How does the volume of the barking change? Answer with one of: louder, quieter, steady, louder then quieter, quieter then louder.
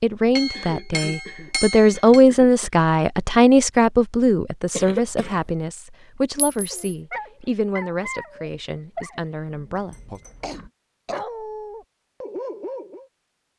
quieter then louder.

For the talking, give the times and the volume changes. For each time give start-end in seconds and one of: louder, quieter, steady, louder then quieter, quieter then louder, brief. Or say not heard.
0.0-10.2 quieter.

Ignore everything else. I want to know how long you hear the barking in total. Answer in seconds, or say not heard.
6 s.